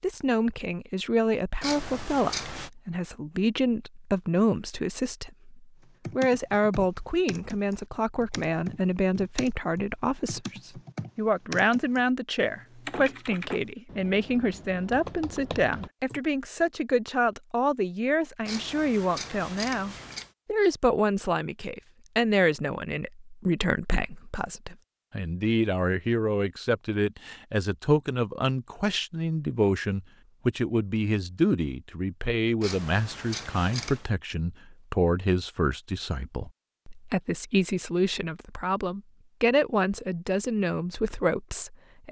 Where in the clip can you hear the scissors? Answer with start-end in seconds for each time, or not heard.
1.6-2.7, 18.4-20.3, 32.6-34.1.